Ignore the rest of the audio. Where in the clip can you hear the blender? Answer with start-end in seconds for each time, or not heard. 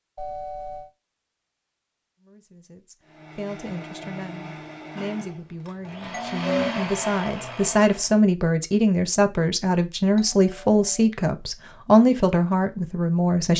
3.0-8.2.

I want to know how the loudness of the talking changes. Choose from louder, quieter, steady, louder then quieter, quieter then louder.
louder.